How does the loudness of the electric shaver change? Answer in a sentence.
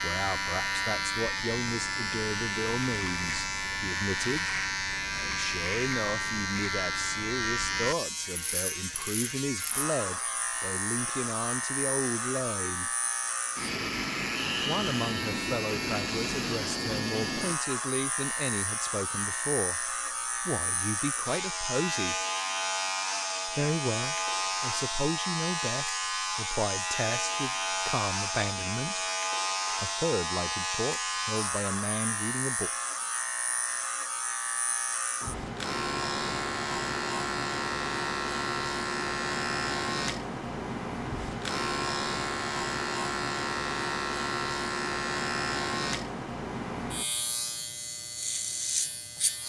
The volume of the electric shaver stays about the same.